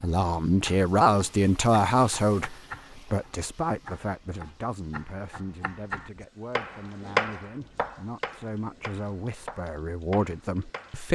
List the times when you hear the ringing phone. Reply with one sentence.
You can't hear the ringing phone here.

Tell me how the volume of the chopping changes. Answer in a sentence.
The volume of the chopping goes up, then down.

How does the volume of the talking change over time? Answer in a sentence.
The loudness of the talking goes down, then up.